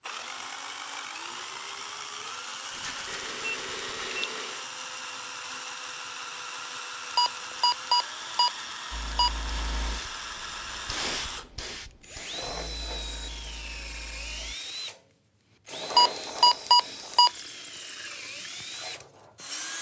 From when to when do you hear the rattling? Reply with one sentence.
You can hear the rattling from 2.7 to 4.2 s.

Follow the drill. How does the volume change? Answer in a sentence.
The loudness of the drill stays about the same.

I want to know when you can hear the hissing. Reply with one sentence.
You can hear the hissing from 8.9 to 14.6 s.